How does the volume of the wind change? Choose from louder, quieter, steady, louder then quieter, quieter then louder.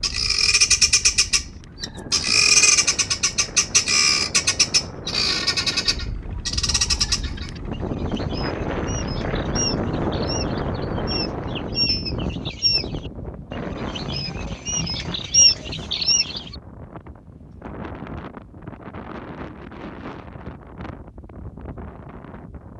louder then quieter.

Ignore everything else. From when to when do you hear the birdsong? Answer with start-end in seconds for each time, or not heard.
0.0-16.6.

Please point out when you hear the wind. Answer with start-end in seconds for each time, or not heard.
0.0-22.7.